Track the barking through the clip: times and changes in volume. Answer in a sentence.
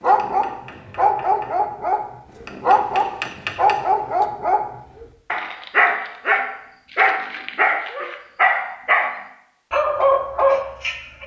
You can hear the barking from 0.0 to 11.2 s, at a steady volume.